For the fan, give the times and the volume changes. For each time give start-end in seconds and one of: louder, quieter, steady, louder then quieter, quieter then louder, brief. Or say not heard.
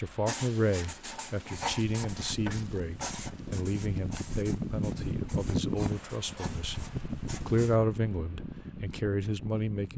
0.0-9.9 louder then quieter.